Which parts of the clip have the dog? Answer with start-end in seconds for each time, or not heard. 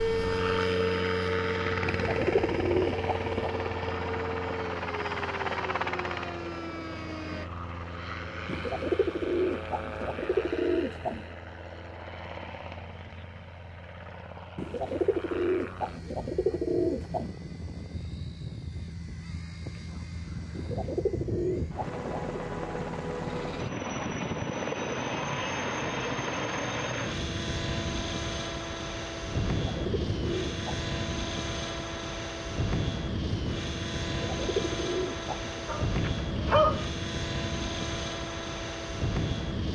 35.6-36.9.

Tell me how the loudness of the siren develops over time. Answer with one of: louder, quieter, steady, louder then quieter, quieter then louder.
quieter.